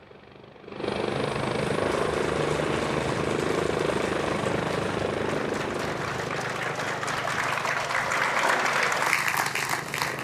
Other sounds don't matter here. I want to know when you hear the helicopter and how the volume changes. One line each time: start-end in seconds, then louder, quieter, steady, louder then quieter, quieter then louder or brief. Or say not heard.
0.0-10.1 quieter.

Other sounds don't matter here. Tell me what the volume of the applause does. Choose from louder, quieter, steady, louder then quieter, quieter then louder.
louder.